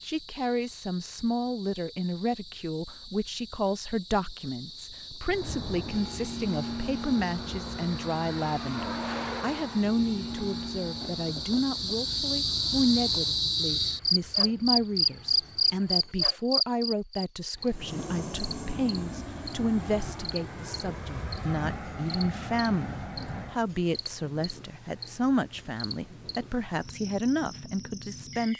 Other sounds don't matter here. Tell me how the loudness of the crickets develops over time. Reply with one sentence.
The loudness of the crickets goes up, then down.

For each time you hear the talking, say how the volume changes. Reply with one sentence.
You can hear the talking from 0.0 to 28.5 s, at a steady volume.